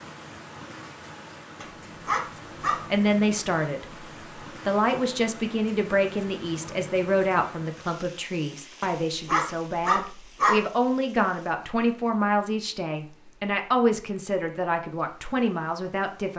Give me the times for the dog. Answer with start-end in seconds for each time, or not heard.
1.6-2.8, 8.8-10.6.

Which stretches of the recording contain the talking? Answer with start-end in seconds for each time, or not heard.
2.9-4.0, 4.7-16.3.